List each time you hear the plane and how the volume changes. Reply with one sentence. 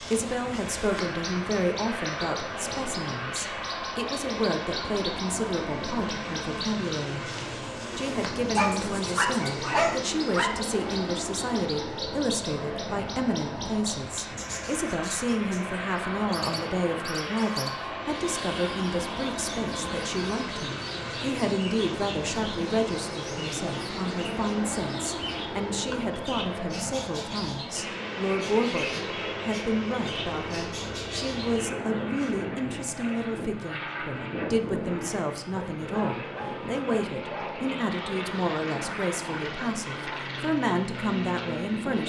You can hear the plane from 0.0 to 42.0 s, at a steady volume.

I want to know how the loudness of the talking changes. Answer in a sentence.
The loudness of the talking stays about the same.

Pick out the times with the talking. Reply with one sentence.
You can hear the talking from 0.0 to 7.3 s and from 8.0 to 42.0 s.